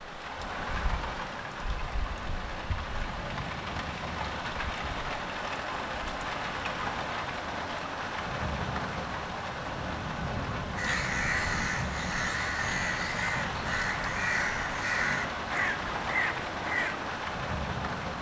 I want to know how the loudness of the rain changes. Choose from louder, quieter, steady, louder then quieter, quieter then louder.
steady.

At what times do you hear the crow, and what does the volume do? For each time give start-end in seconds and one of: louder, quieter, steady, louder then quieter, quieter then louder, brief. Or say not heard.
10.8-17.1 steady.